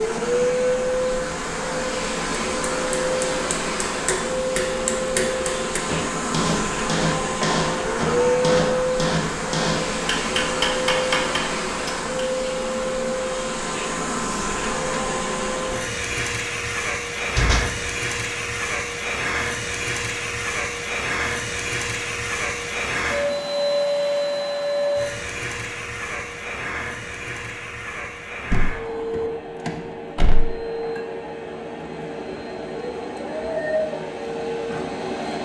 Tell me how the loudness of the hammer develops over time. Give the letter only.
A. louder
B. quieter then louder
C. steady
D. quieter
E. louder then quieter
A.